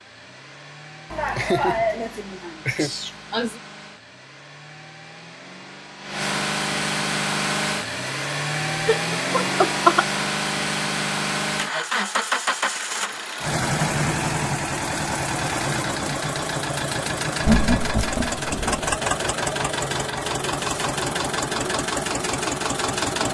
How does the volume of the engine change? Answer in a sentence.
The loudness of the engine goes up.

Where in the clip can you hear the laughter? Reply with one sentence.
You can hear the laughter from 1.1 to 3.6 s, from 8.8 to 10.1 s and from 17.4 to 18.9 s.